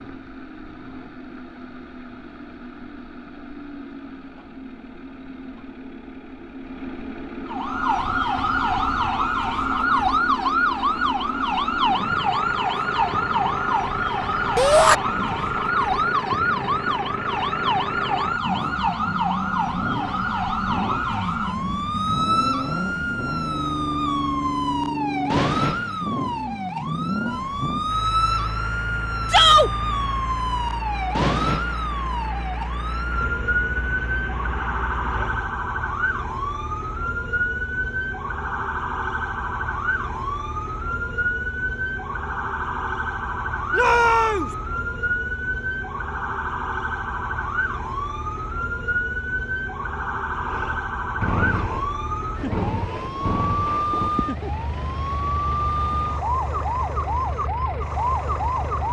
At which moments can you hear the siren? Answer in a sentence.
You can hear the siren from 7.5 to 58.8 s.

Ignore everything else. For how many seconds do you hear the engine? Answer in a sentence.
The engine can be heard for 44 seconds in total.